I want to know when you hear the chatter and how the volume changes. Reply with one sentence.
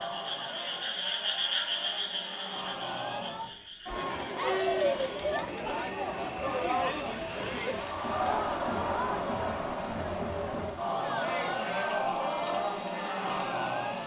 You can hear the chatter from 0.0 to 14.0 s, getting louder.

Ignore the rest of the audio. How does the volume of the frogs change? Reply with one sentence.
The loudness of the frogs goes down.